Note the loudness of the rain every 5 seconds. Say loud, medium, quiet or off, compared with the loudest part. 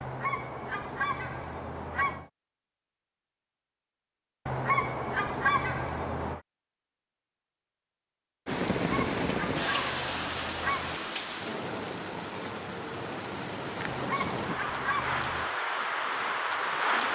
off, loud, medium, loud.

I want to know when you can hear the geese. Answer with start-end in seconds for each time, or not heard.
0.0-2.3, 4.5-6.4, 8.7-11.0, 13.8-15.5.